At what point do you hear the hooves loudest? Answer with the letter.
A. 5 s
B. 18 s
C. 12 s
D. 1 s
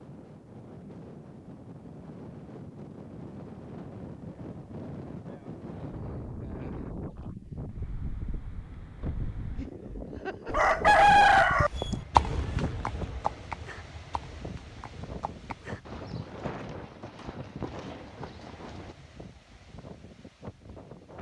C.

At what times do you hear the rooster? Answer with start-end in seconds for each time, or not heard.
10.4-12.1.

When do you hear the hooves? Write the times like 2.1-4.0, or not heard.
11.2-18.9.